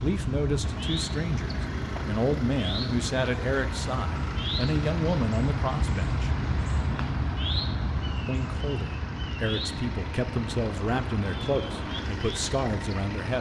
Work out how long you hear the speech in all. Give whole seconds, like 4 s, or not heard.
11 s.